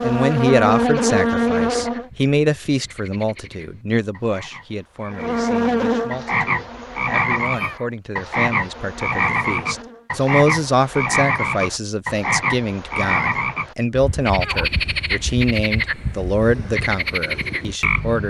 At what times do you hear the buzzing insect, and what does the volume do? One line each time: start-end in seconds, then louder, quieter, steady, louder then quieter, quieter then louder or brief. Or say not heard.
0.0-2.1 brief
5.1-10.1 quieter.